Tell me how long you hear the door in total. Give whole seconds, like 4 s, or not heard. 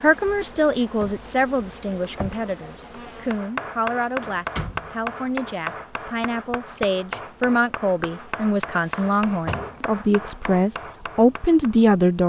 4 s.